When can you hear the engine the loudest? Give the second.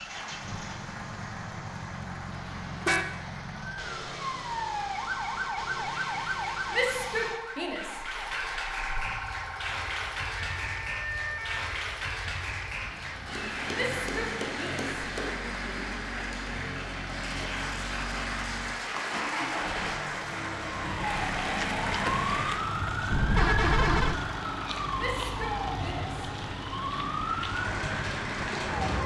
22 s.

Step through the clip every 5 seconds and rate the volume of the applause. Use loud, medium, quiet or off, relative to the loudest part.
medium, loud, loud, loud, loud, loud.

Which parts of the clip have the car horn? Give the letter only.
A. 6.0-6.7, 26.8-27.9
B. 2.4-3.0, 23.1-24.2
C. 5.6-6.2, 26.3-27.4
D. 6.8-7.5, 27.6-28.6
B.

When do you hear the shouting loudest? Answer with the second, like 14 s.
7 s.